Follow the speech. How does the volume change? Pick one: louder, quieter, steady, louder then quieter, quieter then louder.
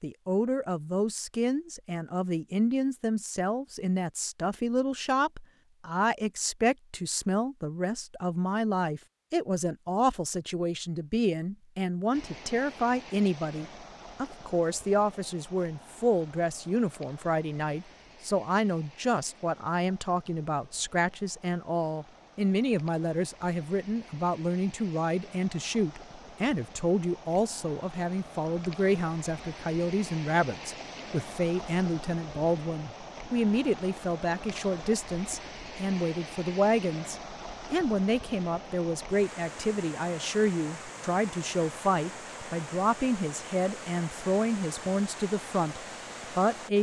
steady.